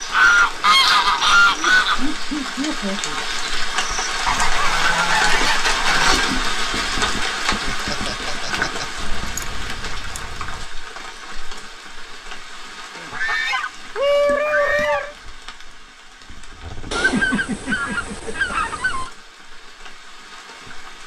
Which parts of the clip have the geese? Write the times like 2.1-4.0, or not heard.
0.1-2.0, 4.2-6.2, 8.9-10.7, 12.9-15.1, 16.9-19.1.